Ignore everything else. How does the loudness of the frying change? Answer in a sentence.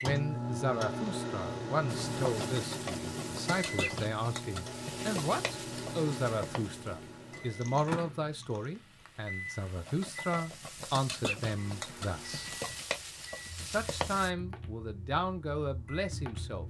The volume of the frying goes down, then up.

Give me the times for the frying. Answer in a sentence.
The frying can be heard from 1.9 to 14.3 s.